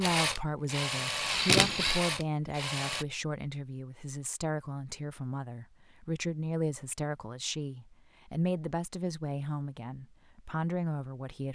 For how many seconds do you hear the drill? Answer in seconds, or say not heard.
3 s.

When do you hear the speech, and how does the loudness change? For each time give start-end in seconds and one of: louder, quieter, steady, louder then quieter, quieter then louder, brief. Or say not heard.
0.0-11.5 steady.